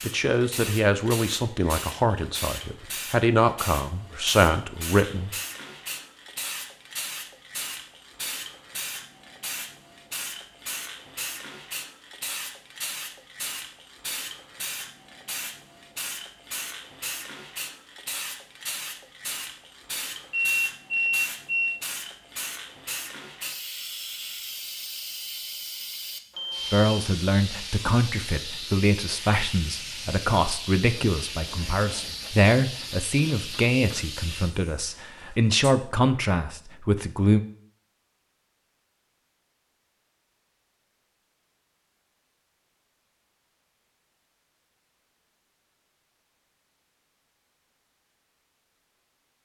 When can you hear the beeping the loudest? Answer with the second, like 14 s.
21 s.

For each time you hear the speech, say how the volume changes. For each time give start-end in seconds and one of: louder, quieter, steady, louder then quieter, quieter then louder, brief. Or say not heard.
0.1-5.3 quieter then louder
26.7-37.4 steady.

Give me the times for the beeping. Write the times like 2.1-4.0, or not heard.
20.3-21.8, 26.3-26.9.